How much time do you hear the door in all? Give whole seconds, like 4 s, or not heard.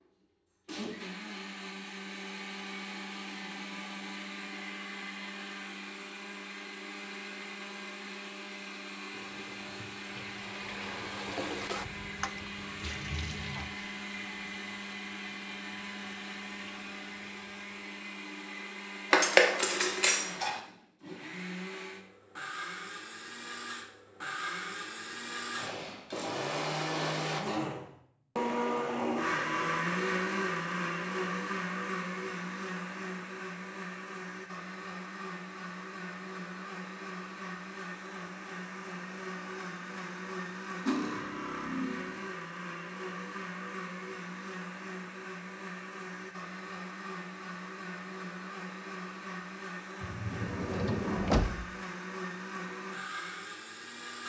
2 s.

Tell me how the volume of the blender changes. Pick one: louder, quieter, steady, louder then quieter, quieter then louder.
louder then quieter.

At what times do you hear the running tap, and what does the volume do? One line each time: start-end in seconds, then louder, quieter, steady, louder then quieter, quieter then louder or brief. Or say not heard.
9.0-18.1 louder then quieter.